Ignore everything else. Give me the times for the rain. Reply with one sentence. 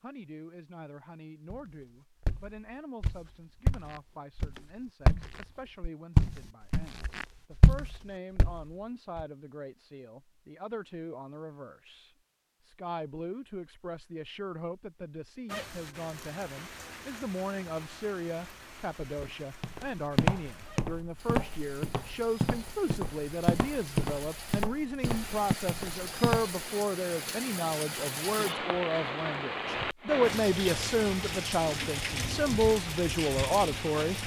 You can hear the rain from 15.4 to 34.2 s.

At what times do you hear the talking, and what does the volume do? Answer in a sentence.
You can hear the talking from 0.0 to 34.1 s, getting louder.